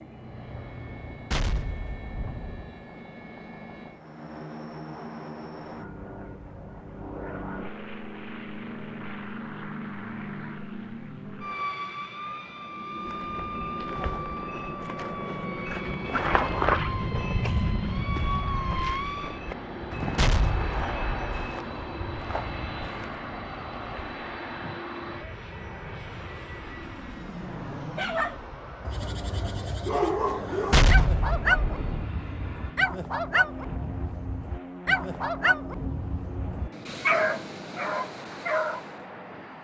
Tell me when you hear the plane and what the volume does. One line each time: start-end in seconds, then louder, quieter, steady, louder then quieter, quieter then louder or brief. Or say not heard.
0.0-39.5 louder then quieter.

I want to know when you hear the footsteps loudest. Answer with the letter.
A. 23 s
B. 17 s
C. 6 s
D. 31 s
B.